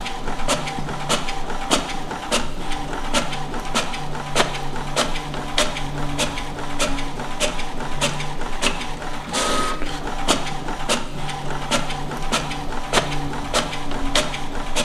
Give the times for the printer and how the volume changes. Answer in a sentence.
You can hear the printer from 0.0 to 14.8 s, at a steady volume.